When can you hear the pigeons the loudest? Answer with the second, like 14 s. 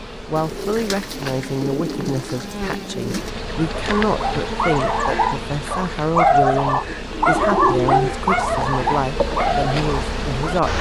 8 s.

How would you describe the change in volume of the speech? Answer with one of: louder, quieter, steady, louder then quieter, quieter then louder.
steady.